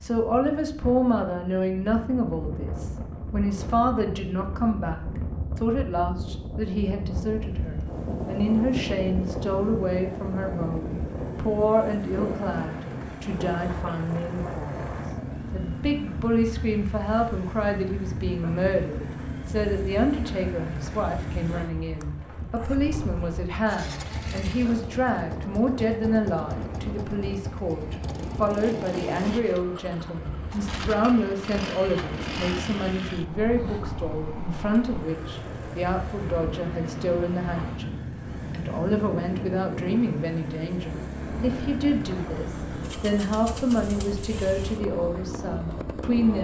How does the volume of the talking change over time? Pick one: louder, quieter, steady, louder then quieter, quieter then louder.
steady.